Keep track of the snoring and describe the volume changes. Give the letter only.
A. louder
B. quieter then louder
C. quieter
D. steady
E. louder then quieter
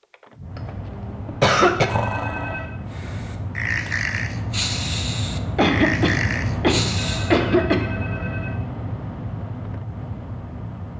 A.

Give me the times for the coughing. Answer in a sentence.
You can hear the coughing from 0.6 to 1.9 s and from 5.5 to 8.1 s.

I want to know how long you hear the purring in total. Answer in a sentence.
You can't hear the purring here.